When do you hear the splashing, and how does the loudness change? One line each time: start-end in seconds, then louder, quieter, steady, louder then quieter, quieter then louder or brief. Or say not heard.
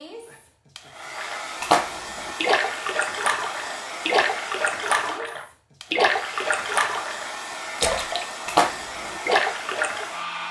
1.1-10.1 steady.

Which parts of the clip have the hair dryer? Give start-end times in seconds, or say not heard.
0.0-10.4.